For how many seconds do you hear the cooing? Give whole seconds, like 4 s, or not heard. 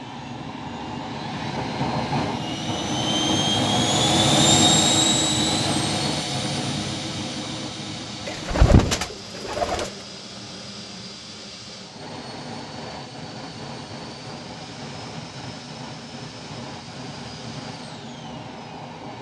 2 s.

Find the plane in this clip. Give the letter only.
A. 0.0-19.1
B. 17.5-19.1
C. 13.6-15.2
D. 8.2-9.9
A.